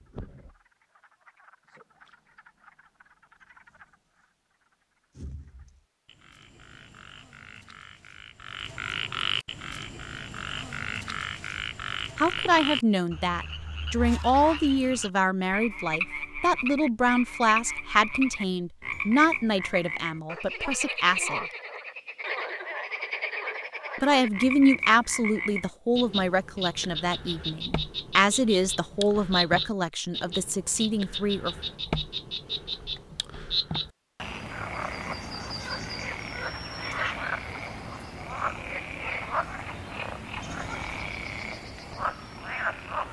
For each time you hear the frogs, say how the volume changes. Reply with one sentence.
You can hear the frogs from 0.0 to 4.2 s, getting louder; and from 5.2 to 43.0 s, at a steady volume.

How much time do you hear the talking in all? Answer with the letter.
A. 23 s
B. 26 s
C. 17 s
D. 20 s
C.